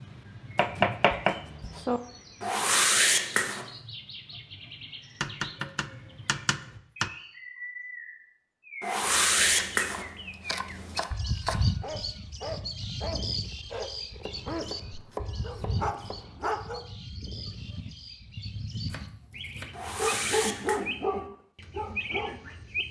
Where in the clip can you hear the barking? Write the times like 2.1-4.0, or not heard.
11.8-16.9, 17.6-22.8.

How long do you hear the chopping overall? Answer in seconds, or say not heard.
10 s.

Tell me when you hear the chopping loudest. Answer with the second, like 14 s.
1 s.